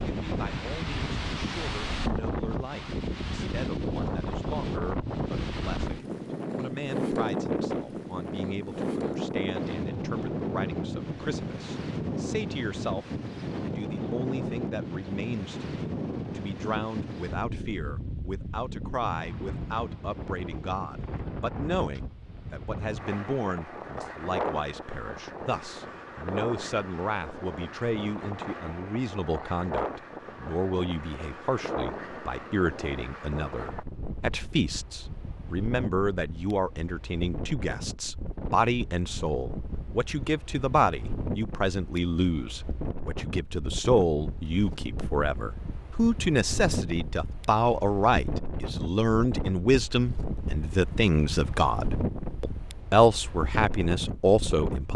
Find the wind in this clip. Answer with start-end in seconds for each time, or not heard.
0.0-54.9.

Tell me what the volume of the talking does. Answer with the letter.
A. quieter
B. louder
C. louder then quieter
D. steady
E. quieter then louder
B.